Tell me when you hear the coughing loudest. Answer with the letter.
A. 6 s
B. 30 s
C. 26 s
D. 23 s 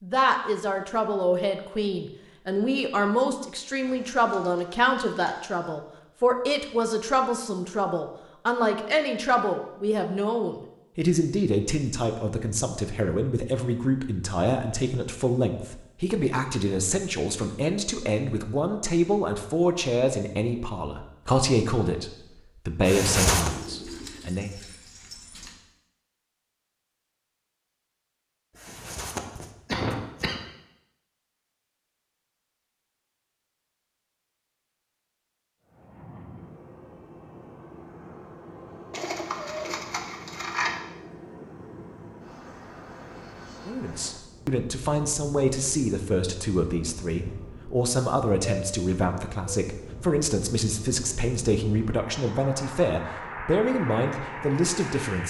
D.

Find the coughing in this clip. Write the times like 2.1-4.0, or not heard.
22.8-23.5, 28.6-30.4.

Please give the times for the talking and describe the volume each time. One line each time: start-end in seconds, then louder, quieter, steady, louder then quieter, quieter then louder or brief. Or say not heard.
0.0-24.5 steady
43.6-55.2 steady.